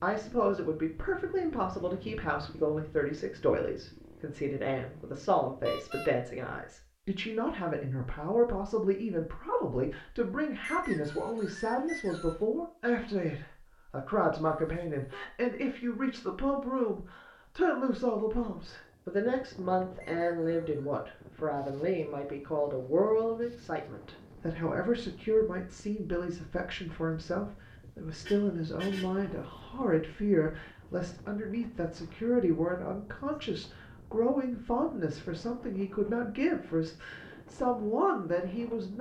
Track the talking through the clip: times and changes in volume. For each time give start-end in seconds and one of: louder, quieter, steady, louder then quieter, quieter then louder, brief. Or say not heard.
0.0-38.9 steady.